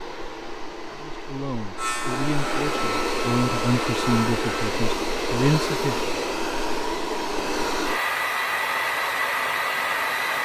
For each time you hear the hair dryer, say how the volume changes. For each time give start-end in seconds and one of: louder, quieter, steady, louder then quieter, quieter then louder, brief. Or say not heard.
0.0-10.4 louder.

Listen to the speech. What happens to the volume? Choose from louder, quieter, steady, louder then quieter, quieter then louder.
louder.